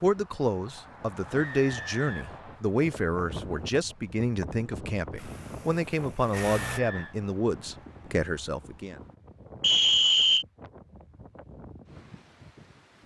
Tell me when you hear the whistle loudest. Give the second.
10 s.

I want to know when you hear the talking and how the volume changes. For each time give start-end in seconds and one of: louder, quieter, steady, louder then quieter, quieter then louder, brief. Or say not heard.
0.0-9.0 steady.